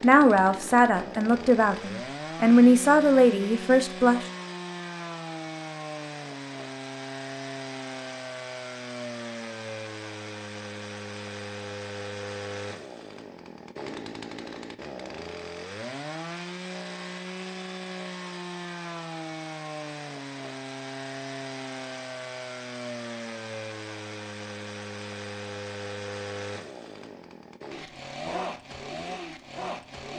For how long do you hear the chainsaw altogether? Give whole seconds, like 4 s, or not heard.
30 s.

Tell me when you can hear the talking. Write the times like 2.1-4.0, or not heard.
0.0-4.2.